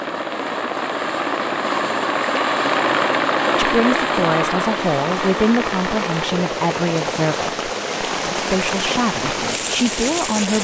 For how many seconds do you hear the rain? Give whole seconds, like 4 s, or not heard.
6 s.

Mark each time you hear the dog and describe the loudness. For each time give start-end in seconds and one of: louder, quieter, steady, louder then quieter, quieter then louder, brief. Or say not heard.
not heard.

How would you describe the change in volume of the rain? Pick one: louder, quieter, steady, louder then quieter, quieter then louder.
louder.